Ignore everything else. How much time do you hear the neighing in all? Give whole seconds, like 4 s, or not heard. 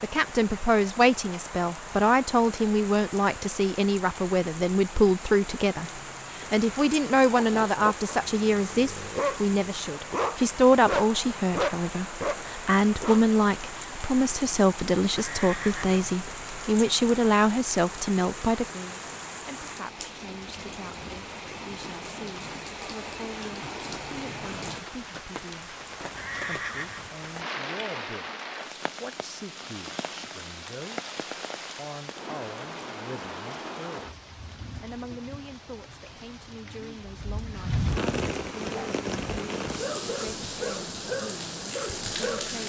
2 s.